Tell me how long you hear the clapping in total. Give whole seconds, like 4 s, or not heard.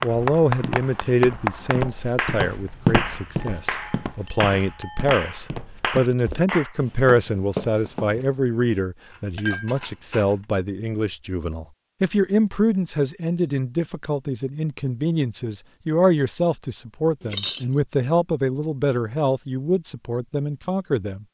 7 s.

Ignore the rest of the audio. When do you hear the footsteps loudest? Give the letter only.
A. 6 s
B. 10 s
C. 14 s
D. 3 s
D.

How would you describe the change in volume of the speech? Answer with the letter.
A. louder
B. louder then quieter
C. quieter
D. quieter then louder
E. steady
E.